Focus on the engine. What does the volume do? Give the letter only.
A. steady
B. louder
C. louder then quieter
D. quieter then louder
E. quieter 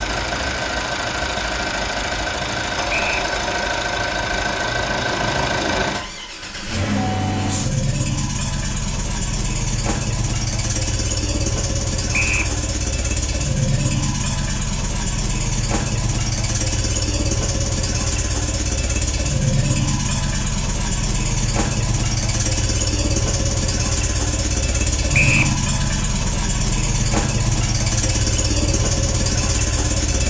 A.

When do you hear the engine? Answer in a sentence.
You can hear the engine from 0.0 to 30.2 s.